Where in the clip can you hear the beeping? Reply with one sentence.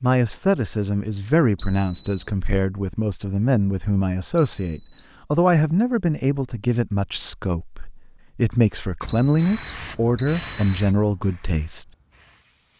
The beeping can be heard from 1.6 to 2.3 s, from 4.3 to 5.1 s and from 9.1 to 10.8 s.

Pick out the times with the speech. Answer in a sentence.
The speech can be heard from 0.0 to 11.8 s.